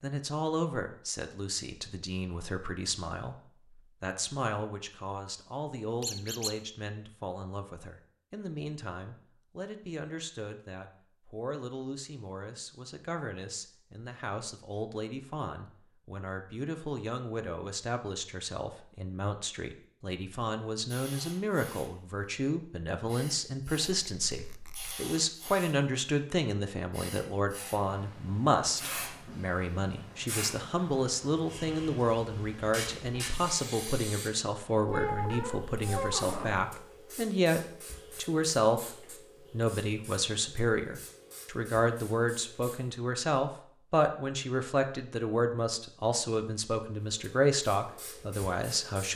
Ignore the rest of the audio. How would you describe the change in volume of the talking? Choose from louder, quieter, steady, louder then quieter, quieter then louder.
louder.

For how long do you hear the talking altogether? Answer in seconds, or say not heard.
49 s.